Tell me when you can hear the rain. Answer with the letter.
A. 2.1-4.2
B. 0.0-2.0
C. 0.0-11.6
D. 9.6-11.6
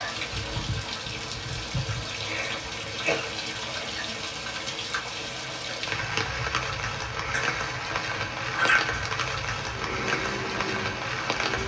C.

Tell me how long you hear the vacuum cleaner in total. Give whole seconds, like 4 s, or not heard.
2 s.